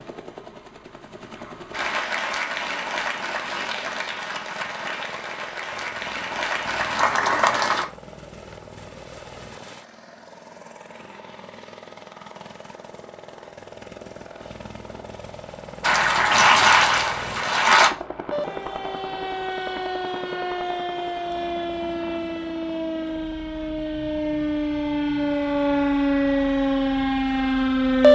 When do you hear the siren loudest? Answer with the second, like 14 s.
28 s.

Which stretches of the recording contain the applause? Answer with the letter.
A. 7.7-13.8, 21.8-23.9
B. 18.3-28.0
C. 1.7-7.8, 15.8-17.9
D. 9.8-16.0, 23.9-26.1
C.